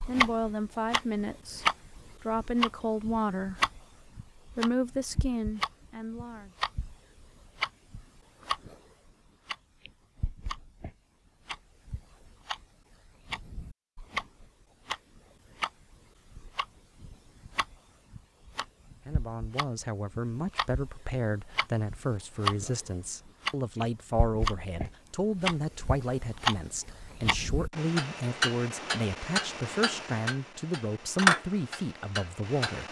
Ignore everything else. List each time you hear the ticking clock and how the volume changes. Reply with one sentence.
You can hear the ticking clock from 0.0 to 32.8 s, getting quieter then louder.